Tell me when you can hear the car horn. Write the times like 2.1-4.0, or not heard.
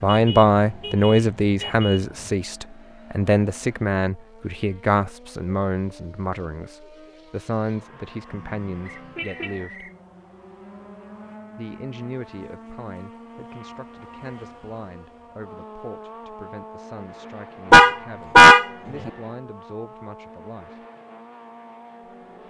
0.1-2.3, 8.3-9.6, 17.7-19.1.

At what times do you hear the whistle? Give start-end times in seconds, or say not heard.
8.8-9.9.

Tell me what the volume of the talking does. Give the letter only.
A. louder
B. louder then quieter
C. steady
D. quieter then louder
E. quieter
E.